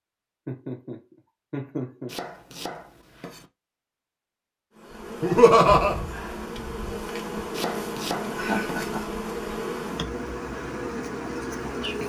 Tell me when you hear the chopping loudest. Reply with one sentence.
The volume of the chopping peaks at 8 seconds.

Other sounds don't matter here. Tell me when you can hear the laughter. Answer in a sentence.
You can hear the laughter from 0.5 to 2.1 s, from 5.2 to 6.0 s and from 8.3 to 9.1 s.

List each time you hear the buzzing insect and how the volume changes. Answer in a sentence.
The buzzing insect can be heard from 4.8 to 12.0 s, at a steady volume.